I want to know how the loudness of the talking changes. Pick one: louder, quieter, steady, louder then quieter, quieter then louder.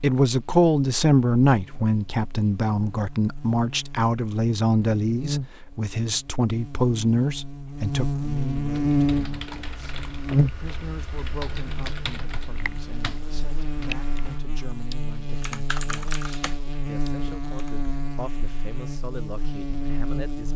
quieter.